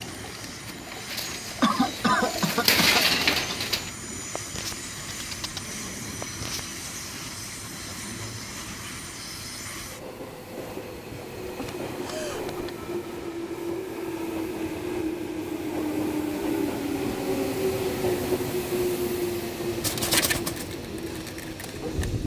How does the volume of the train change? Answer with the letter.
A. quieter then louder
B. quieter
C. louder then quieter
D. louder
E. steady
D.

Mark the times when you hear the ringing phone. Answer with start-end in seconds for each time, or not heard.
not heard.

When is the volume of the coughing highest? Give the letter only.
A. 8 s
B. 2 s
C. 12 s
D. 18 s
B.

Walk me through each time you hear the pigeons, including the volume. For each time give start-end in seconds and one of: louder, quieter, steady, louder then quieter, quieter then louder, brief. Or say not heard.
0.0-6.8 louder then quieter
19.6-22.2 brief.